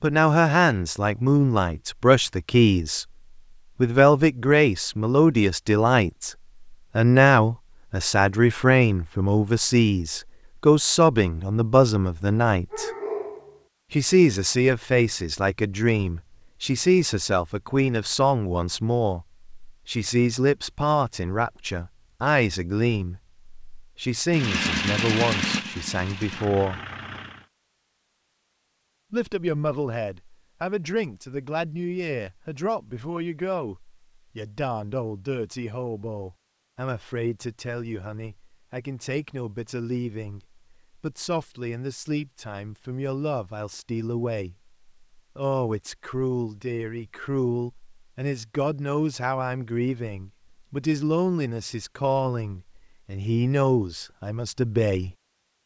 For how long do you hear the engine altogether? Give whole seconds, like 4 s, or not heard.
3 s.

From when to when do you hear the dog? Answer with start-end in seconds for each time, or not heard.
12.7-13.6.